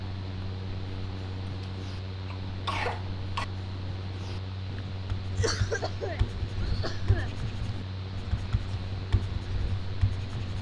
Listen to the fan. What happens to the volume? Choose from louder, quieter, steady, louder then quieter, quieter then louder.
steady.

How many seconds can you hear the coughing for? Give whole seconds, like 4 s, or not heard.
4 s.